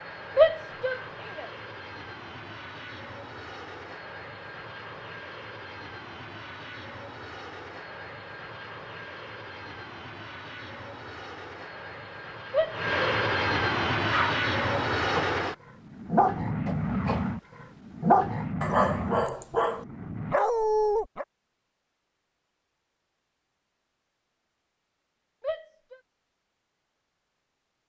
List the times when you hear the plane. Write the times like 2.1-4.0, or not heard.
0.0-20.4.